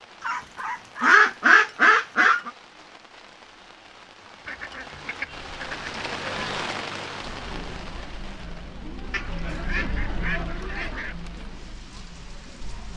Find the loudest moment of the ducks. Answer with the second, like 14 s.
1 s.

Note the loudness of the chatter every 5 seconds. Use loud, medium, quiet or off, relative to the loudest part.
off, loud, loud.